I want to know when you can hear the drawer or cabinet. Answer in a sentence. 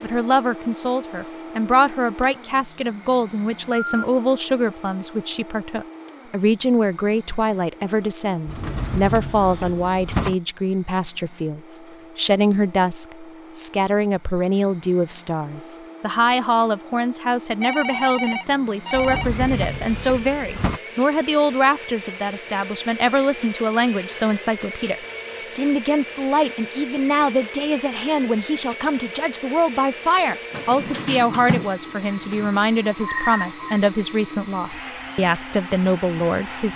You can hear the drawer or cabinet from 8.4 to 10.3 s, from 18.9 to 20.8 s and from 30.5 to 32.5 s.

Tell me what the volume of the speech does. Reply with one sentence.
The volume of the speech stays about the same.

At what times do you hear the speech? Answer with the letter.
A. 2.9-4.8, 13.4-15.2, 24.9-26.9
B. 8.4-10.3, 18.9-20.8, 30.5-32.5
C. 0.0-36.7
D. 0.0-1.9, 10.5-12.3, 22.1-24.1
C.